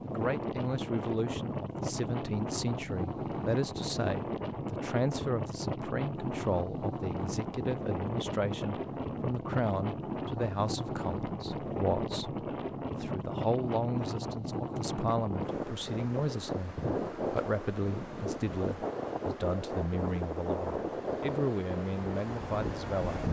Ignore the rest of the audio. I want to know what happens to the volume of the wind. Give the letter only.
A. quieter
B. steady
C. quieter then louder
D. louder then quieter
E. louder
B.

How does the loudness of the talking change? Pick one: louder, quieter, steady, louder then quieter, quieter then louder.
steady.